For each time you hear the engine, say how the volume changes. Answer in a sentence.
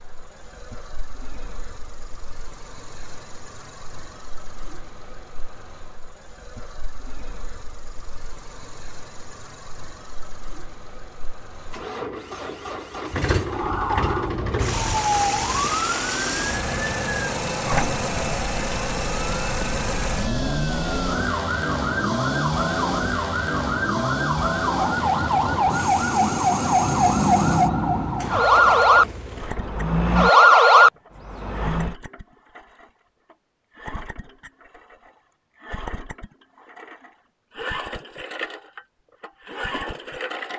The engine can be heard from 0.0 to 40.5 s, getting louder then quieter.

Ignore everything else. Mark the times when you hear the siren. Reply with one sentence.
You can hear the siren from 13.4 to 31.9 s.